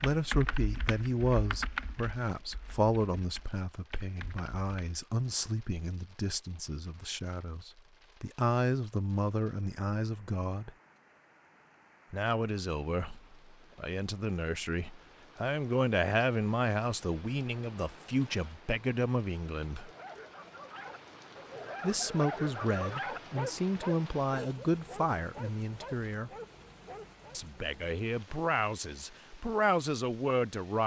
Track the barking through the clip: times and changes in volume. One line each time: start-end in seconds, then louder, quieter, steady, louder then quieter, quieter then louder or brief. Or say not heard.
19.8-27.4 louder then quieter.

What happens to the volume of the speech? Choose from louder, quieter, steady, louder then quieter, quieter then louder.
steady.